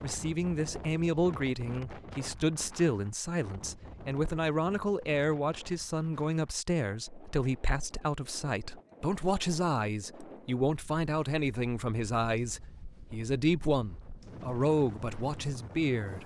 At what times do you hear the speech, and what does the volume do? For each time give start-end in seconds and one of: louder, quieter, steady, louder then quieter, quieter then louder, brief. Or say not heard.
0.0-16.2 steady.